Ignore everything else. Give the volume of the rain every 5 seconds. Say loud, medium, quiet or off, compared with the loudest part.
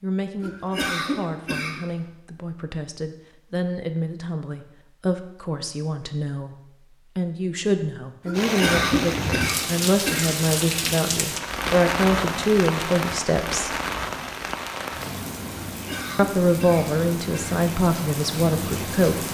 off, loud, loud, medium.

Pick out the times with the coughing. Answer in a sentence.
You can hear the coughing from 0.4 to 1.8 s, from 8.2 to 10.4 s and from 15.7 to 17.6 s.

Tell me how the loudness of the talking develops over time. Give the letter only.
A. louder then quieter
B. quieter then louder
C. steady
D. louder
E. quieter
D.